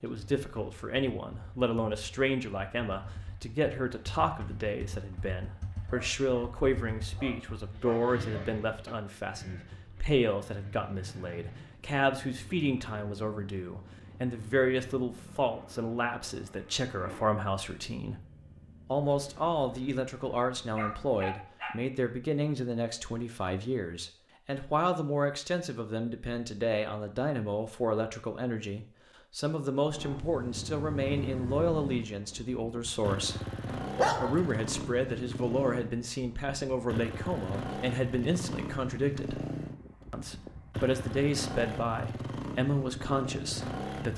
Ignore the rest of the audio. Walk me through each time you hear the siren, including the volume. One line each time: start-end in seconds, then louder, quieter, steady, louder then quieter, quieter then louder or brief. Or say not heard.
not heard.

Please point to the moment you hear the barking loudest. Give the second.
34 s.